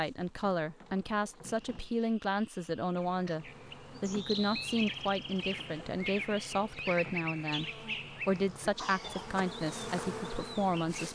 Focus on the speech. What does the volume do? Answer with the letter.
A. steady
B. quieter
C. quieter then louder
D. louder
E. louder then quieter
A.